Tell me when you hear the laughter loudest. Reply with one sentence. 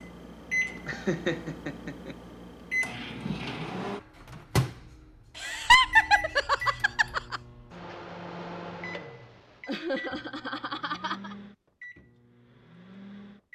The loudest moment of the laughter is at 6 seconds.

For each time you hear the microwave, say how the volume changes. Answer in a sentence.
The microwave can be heard from 0.0 to 13.4 s, getting quieter.